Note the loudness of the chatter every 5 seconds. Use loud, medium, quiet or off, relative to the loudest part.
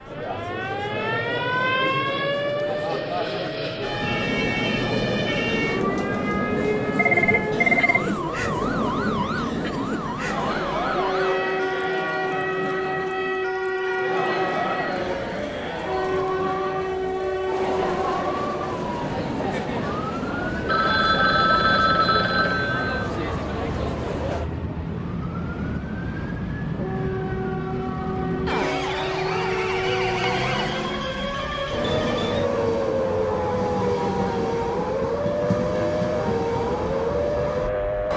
loud, loud, loud, loud, loud, off, off, off.